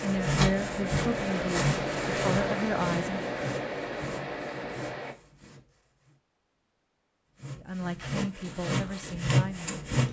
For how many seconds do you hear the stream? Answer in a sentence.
The stream can be heard for 5 seconds in total.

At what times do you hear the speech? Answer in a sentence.
You can hear the speech from 0.0 to 3.3 s and from 7.5 to 9.8 s.